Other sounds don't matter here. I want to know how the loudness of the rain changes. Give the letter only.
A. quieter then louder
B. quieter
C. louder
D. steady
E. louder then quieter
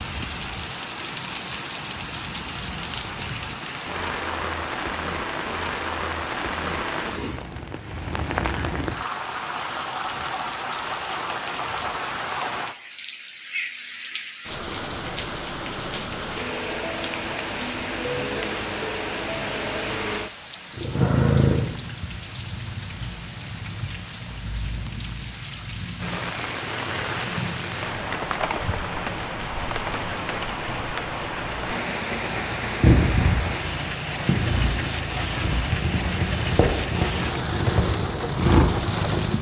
D.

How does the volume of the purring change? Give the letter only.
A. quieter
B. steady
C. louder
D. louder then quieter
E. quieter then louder
E.